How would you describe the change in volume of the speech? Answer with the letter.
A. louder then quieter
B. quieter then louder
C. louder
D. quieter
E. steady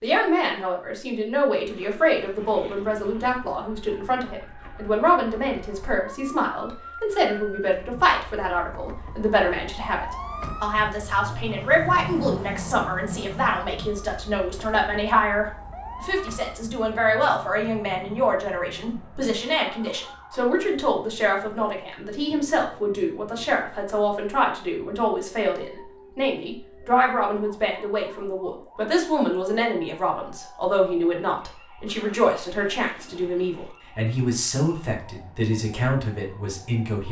E.